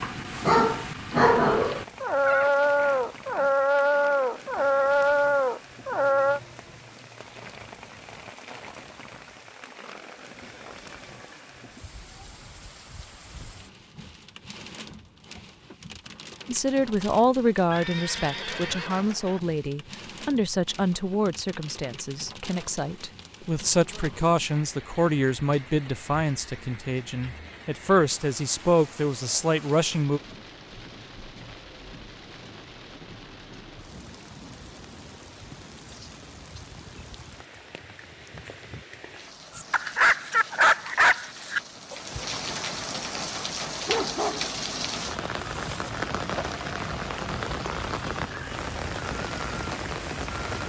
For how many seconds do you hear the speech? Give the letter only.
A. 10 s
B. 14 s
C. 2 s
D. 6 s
B.